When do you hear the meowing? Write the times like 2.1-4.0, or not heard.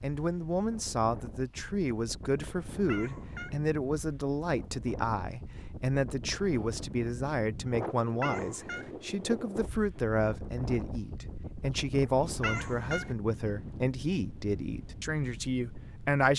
2.9-3.6, 8.2-8.9, 12.4-13.2.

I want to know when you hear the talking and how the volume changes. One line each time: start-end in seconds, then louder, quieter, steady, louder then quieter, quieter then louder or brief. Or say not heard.
0.0-16.3 steady.